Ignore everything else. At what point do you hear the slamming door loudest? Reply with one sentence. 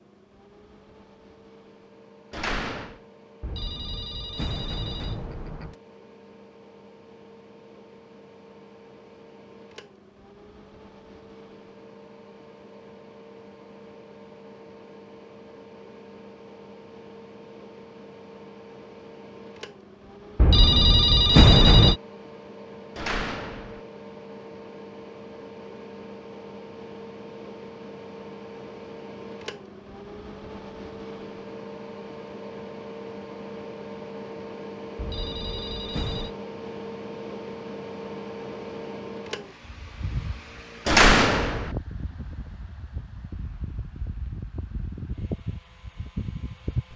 The volume of the slamming door peaks at 41 seconds.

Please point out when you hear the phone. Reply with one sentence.
The phone can be heard from 3.4 to 5.8 s, from 20.4 to 21.9 s and from 35.0 to 36.4 s.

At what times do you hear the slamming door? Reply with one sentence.
The slamming door can be heard from 2.3 to 3.0 s, from 22.9 to 23.8 s and from 40.9 to 41.8 s.